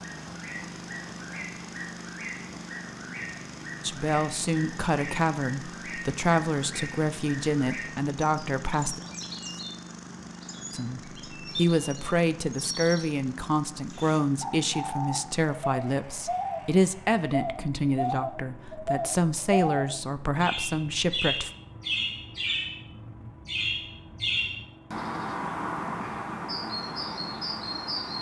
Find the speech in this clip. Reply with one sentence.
The speech can be heard from 3.8 to 9.0 s and from 10.7 to 21.5 s.